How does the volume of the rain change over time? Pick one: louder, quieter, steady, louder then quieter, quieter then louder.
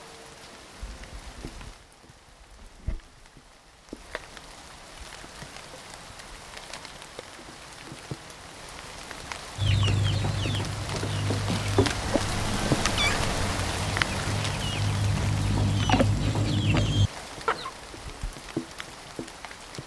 louder then quieter.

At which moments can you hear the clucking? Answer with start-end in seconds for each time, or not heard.
9.6-17.7.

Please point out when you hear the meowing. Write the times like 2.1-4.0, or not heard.
12.1-13.3.